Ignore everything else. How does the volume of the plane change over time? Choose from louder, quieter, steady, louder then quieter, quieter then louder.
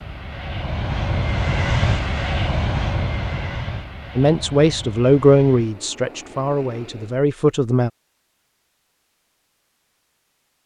quieter.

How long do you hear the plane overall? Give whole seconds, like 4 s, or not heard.
7 s.